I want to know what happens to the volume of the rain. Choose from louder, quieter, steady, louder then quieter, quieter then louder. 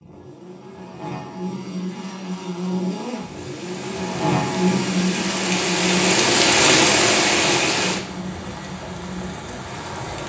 louder then quieter.